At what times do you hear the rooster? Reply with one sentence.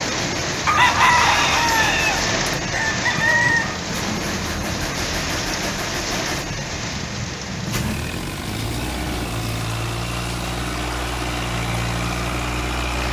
You can hear the rooster from 0.7 to 3.8 s.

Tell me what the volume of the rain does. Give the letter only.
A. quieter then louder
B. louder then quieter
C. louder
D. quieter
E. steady
D.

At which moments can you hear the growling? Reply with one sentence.
You can't hear the growling here.